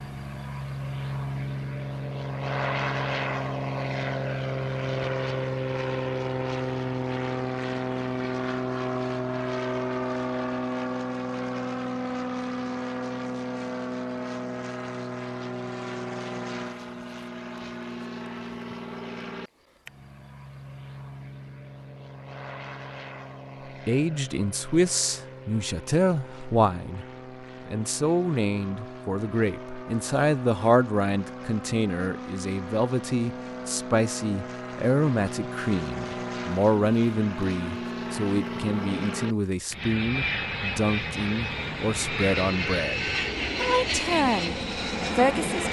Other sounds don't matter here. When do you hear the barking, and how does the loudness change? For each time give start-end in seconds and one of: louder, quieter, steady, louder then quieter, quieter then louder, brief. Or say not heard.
not heard.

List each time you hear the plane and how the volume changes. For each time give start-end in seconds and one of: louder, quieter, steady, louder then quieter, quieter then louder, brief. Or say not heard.
0.0-45.6 quieter then louder.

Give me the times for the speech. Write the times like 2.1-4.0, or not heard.
23.9-27.1, 27.6-44.5, 45.1-45.6.